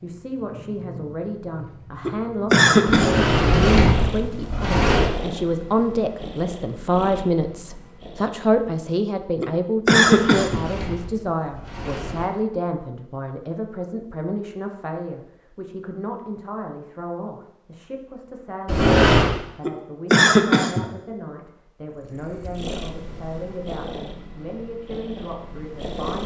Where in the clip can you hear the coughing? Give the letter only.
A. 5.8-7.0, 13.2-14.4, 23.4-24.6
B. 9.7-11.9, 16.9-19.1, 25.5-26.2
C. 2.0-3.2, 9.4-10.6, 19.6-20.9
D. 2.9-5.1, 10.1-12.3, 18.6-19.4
C.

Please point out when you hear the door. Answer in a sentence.
You can hear the door from 2.9 to 5.1 s, from 10.1 to 12.3 s and from 18.6 to 19.4 s.